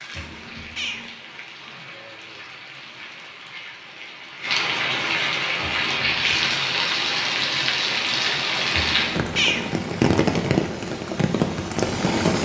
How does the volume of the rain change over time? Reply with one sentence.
The volume of the rain goes up.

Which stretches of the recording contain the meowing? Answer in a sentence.
The meowing can be heard from 0.1 to 1.1 s, from 5.6 to 6.6 s and from 8.7 to 9.7 s.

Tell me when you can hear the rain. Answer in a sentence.
You can hear the rain from 0.0 to 12.3 s.